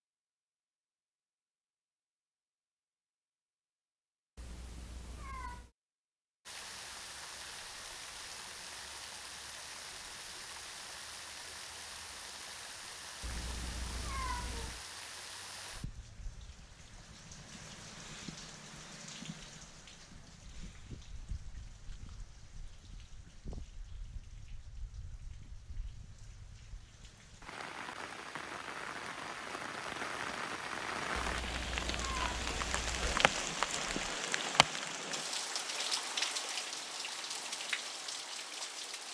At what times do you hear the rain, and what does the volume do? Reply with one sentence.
You can hear the rain from 6.5 to 39.1 s, getting quieter then louder.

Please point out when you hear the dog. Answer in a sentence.
You can't hear the dog here.